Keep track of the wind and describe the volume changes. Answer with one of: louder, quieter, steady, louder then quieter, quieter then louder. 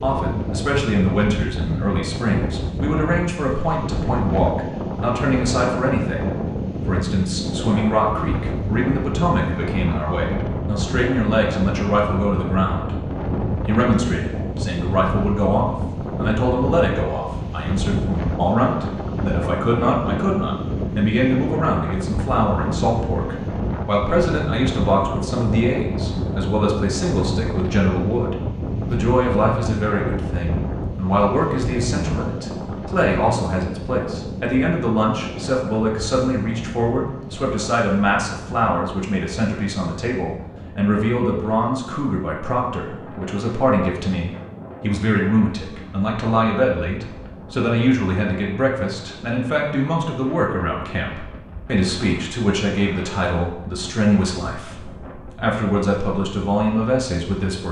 quieter.